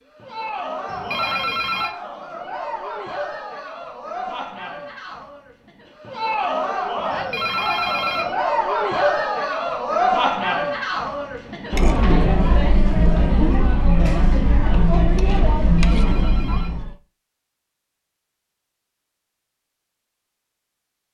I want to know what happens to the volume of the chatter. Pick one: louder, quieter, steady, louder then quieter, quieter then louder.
louder.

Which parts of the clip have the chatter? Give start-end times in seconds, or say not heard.
0.1-16.9.